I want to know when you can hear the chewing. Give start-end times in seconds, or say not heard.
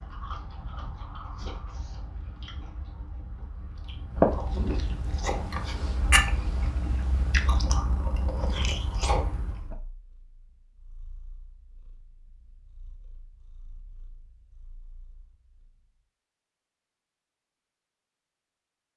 0.0-9.8.